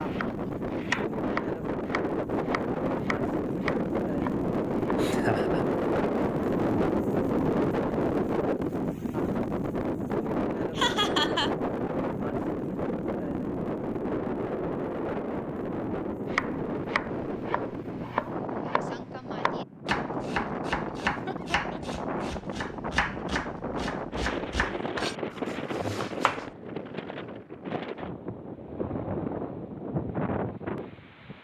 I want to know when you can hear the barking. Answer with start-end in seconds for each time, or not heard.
not heard.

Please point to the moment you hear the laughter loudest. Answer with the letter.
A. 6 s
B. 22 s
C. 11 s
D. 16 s
C.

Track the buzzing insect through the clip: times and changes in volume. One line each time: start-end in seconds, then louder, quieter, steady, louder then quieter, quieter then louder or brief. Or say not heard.
not heard.